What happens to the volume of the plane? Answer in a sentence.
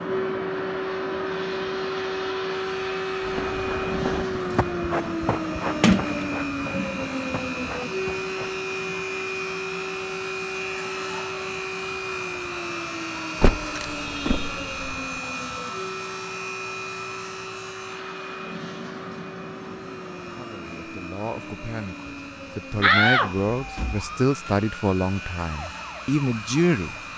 The loudness of the plane goes down.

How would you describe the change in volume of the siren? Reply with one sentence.
The volume of the siren goes down.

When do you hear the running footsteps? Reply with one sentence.
You can hear the running footsteps from 3.2 to 8.6 s.